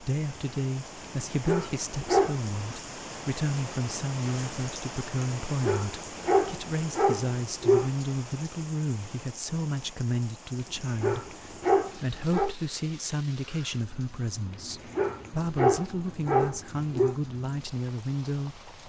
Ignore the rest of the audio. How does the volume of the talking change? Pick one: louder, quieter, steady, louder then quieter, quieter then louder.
steady.